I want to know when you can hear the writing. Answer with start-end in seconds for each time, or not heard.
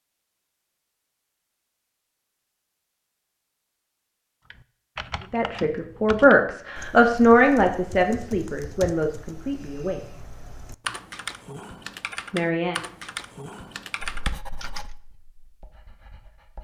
14.0-16.5.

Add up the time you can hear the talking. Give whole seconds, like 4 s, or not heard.
5 s.